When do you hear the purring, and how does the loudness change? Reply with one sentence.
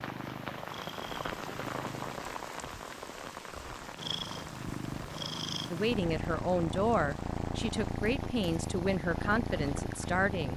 The purring can be heard briefly from 0.0 to 2.2 s; and from 3.8 to 10.5 s, at a steady volume.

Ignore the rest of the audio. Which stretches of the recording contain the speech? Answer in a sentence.
You can hear the speech from 5.7 to 10.5 s.